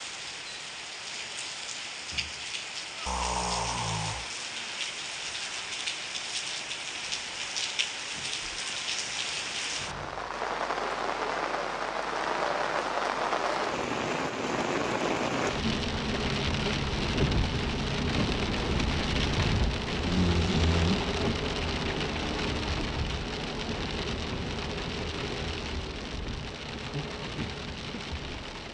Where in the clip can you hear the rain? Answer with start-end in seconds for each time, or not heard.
0.0-28.6.